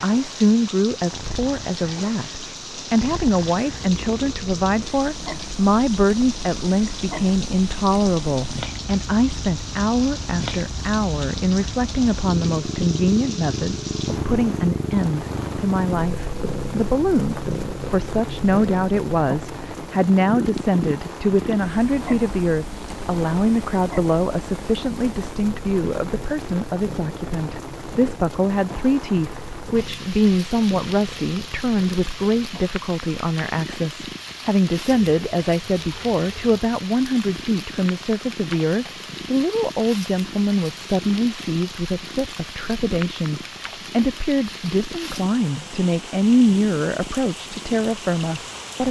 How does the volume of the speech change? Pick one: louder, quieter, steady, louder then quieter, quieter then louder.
steady.